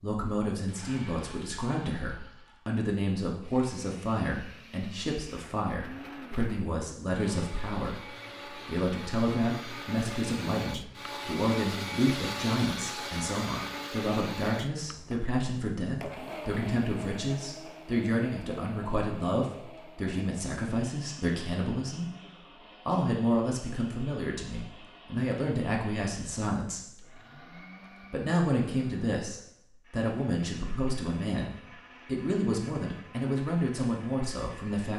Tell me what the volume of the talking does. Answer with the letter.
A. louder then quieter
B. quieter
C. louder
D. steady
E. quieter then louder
D.